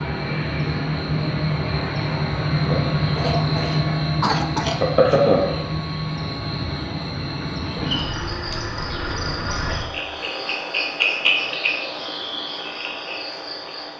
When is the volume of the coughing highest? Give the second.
4 s.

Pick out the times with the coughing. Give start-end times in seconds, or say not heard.
3.1-5.3.